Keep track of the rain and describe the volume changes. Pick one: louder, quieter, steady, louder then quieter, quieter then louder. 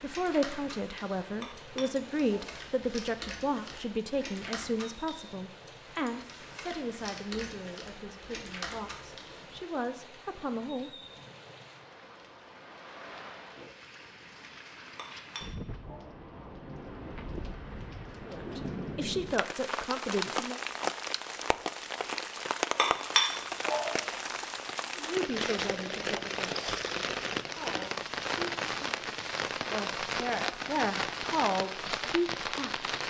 louder.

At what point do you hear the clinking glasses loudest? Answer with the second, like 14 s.
23 s.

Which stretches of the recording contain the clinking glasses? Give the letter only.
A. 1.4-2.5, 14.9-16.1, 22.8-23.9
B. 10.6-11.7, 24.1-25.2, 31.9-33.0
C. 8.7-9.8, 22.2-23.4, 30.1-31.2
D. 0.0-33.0
A.